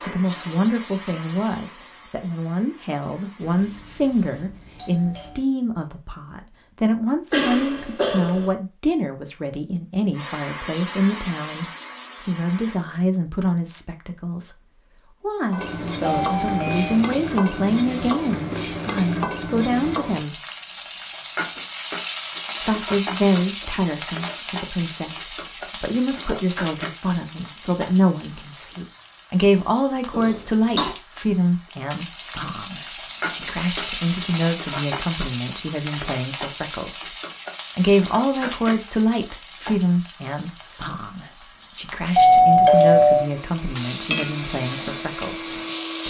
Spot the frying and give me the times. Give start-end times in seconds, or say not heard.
15.5-46.0.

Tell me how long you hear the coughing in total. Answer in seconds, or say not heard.
2 s.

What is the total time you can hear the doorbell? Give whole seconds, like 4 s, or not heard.
4 s.